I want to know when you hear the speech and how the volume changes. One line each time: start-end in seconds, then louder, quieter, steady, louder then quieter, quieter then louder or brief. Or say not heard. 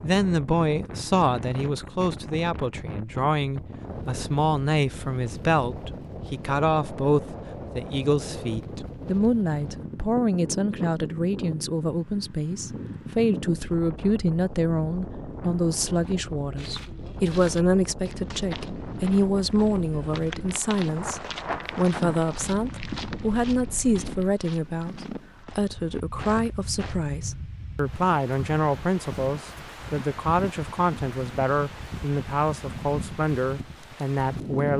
0.0-34.7 steady.